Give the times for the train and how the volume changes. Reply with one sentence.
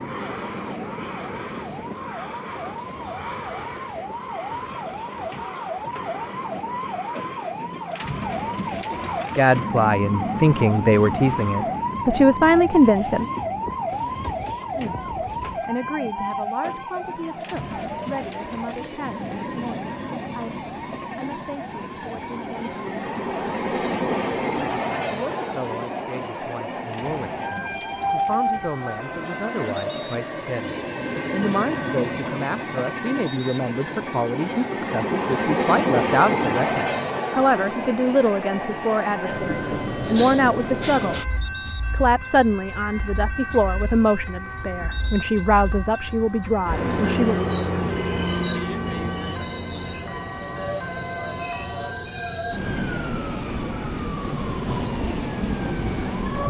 The train can be heard from 0.0 to 56.4 s, getting louder.